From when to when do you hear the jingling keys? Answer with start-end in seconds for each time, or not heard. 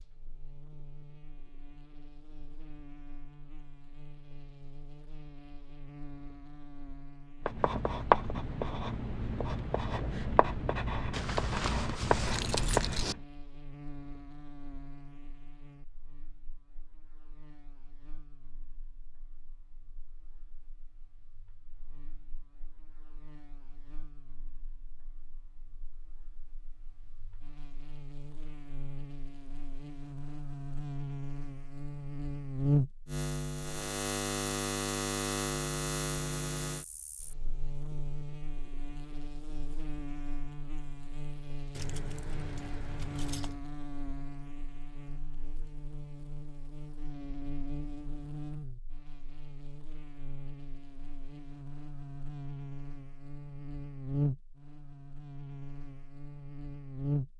11.1-13.2, 41.7-43.6.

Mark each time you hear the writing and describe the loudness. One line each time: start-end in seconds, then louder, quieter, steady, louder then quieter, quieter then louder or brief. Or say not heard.
7.5-13.2 quieter then louder.